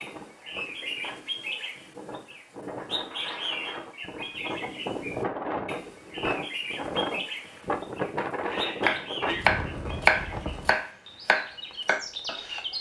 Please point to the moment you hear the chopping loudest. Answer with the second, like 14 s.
10 s.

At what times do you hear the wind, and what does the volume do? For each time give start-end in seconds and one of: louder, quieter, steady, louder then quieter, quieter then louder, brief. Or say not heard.
0.0-10.8 louder.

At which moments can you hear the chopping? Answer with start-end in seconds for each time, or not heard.
8.8-12.6.